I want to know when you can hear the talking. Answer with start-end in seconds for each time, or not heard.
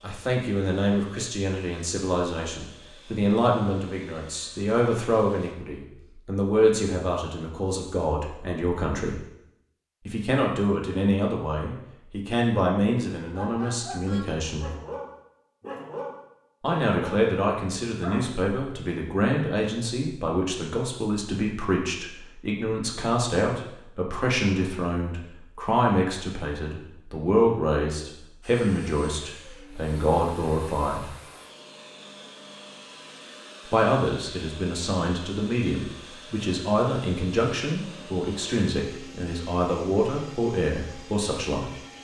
0.0-9.2, 10.1-14.7, 16.6-31.1, 33.7-41.7.